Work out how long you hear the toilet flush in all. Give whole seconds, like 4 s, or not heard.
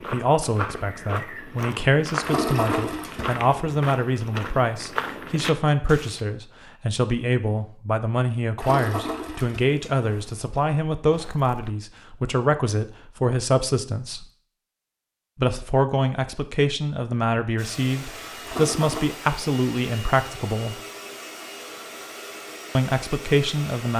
4 s.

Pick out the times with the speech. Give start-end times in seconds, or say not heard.
0.1-14.2, 15.3-20.8, 22.8-23.9.